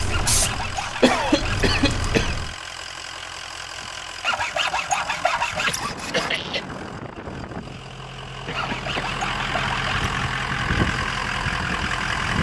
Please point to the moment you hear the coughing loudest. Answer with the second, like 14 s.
1 s.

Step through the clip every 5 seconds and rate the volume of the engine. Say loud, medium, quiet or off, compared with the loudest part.
medium, medium, loud.